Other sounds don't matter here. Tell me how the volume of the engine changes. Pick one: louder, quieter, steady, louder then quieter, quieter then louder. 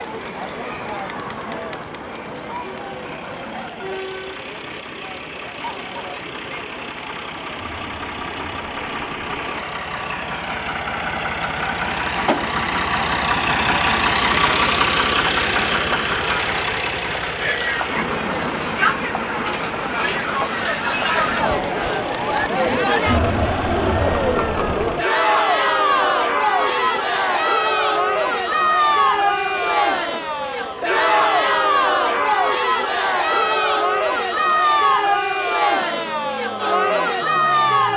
louder then quieter.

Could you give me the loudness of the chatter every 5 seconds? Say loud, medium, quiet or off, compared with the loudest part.
quiet, quiet, quiet, medium, loud, loud, loud, loud.